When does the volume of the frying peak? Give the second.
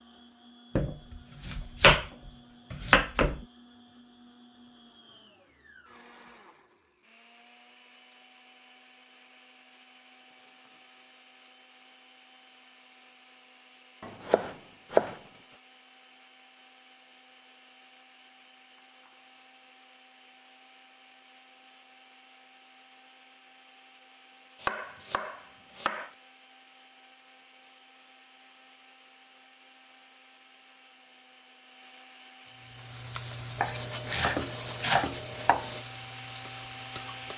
34 s.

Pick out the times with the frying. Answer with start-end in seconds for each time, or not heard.
32.5-37.3.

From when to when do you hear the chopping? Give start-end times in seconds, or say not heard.
0.8-2.0, 2.7-3.4, 14.0-15.2, 24.6-26.1, 33.6-35.8.